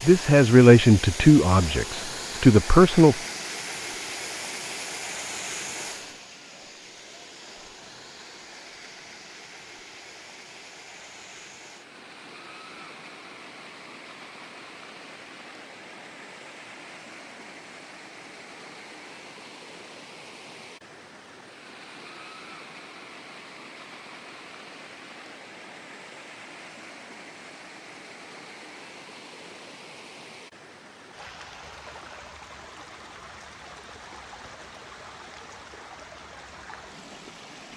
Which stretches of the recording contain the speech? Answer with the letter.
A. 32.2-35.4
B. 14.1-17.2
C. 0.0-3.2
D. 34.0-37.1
C.